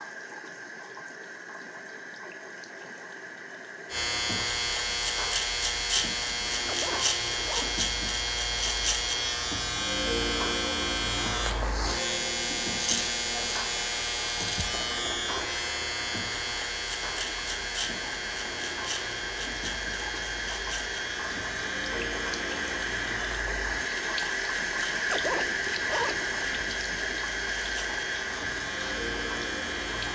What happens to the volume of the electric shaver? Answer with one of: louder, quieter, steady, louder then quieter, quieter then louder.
quieter.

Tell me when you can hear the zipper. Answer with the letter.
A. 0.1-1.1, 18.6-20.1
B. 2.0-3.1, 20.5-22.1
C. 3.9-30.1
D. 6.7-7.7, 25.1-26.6
D.